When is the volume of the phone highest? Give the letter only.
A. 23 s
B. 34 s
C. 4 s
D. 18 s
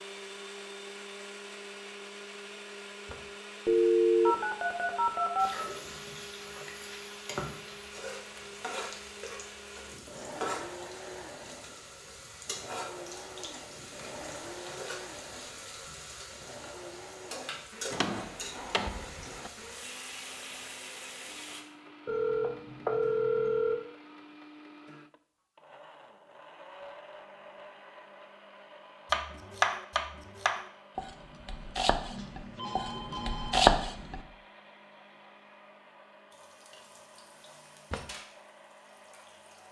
C.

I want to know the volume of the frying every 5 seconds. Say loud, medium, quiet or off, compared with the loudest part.
off, loud, loud, loud, loud, off, off, quiet.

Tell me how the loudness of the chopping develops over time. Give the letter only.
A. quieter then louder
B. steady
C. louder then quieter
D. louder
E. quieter
A.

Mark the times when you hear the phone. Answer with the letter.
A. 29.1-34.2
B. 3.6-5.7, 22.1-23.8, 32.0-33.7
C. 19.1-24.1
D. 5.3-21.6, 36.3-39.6
B.